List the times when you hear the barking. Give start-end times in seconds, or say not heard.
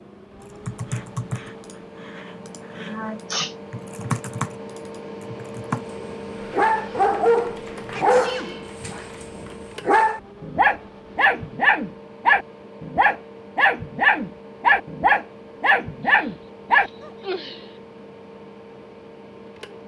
6.0-17.1.